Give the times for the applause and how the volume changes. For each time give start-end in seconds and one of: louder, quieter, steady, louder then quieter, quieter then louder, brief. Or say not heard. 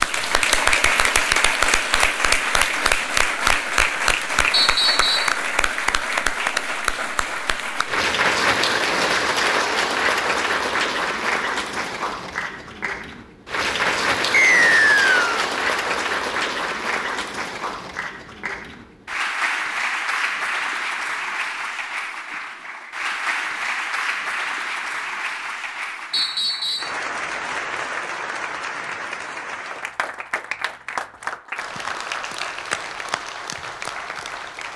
0.0-34.7 quieter.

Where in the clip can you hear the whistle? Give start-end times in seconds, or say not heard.
4.5-5.3, 14.3-15.4, 26.1-26.9.